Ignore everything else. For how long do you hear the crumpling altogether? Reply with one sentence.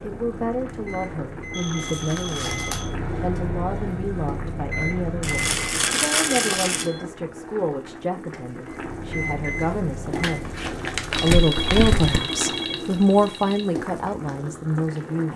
You can hear the crumpling for 5 seconds altogether.